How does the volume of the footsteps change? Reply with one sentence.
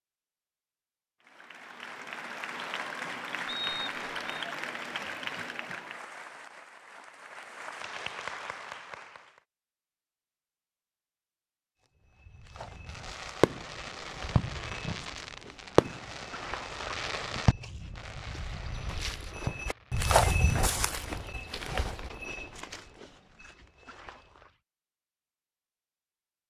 The loudness of the footsteps goes up, then down.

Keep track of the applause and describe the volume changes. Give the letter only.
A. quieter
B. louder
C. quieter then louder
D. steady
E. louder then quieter
C.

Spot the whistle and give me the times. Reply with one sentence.
You can hear the whistle from 3.5 to 4.5 s.